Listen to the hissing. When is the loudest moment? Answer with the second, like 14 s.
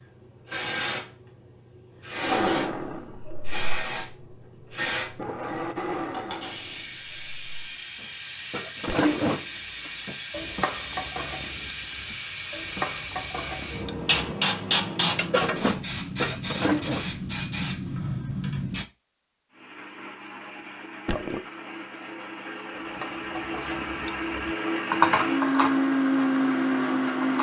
15 s.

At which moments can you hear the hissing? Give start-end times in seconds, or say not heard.
0.0-18.9.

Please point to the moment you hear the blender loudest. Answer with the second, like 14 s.
26 s.